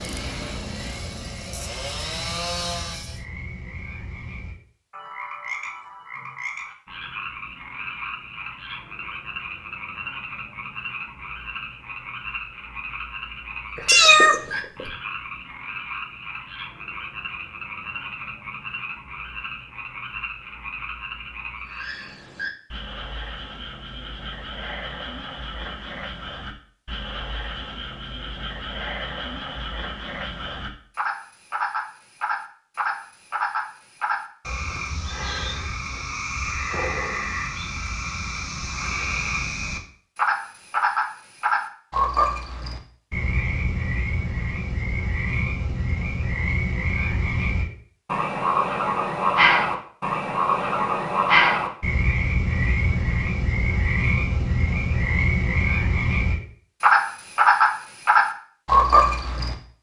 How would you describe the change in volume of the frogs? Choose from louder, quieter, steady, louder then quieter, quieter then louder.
louder.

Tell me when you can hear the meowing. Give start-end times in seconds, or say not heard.
13.8-14.9.